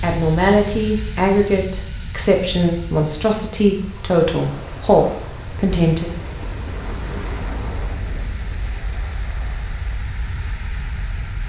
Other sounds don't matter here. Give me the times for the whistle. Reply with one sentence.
You can't hear the whistle here.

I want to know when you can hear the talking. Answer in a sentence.
You can hear the talking from 0.0 to 6.1 s.